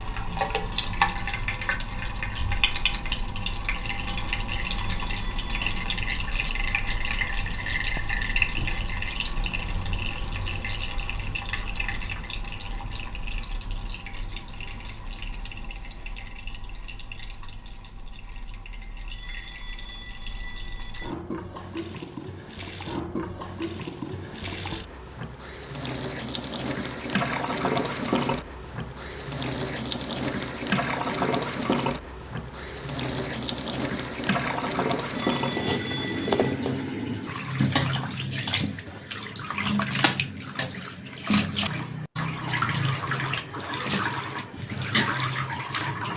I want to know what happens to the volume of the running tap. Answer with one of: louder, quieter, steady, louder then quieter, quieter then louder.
quieter then louder.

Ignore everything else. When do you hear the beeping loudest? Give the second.
36 s.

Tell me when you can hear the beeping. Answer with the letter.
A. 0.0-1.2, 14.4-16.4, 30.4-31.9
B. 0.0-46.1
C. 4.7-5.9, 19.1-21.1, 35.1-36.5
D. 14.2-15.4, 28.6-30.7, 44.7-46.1
C.